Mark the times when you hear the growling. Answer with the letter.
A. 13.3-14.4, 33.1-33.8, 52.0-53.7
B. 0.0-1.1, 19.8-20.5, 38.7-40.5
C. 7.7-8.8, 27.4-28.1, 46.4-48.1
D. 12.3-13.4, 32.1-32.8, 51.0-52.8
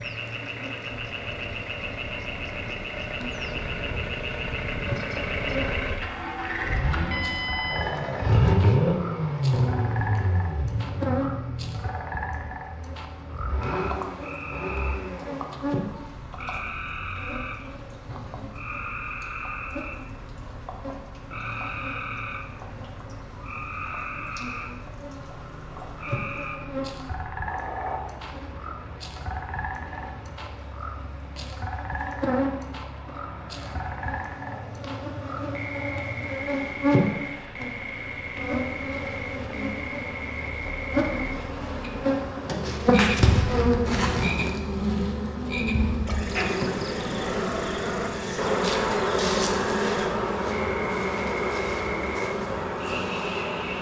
C.